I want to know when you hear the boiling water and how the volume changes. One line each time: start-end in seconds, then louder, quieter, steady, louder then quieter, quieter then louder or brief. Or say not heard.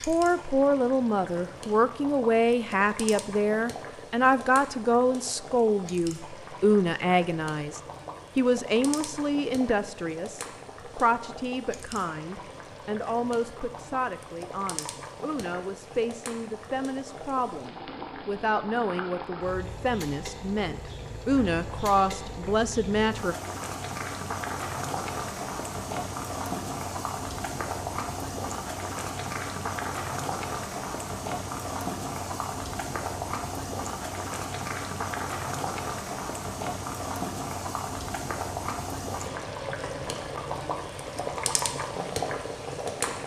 0.0-43.2 louder.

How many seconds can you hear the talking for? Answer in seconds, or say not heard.
23 s.